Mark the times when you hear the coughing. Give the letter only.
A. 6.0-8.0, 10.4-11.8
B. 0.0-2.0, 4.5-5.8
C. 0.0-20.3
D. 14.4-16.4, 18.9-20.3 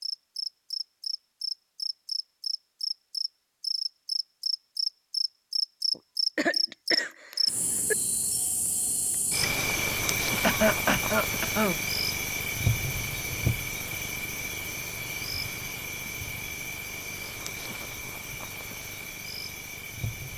A.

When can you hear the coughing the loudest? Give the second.
11 s.